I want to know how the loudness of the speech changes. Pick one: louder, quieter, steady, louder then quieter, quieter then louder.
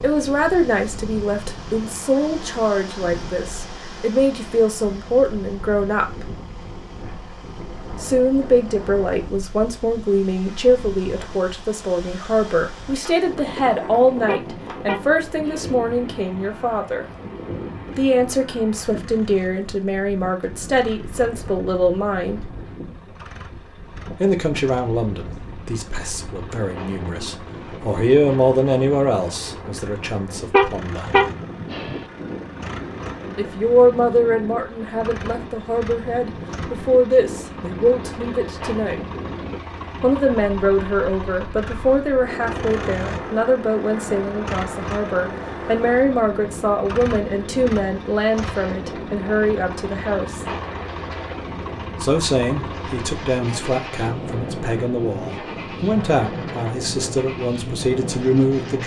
steady.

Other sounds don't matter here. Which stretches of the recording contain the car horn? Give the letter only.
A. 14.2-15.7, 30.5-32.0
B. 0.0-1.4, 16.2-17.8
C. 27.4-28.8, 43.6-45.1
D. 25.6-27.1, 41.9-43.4
A.